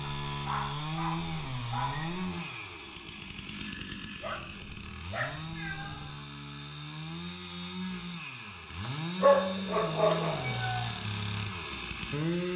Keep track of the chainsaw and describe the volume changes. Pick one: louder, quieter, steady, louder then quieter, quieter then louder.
quieter then louder.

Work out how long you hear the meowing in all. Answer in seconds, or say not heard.
3 s.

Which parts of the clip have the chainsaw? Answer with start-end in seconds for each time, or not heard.
0.0-12.5.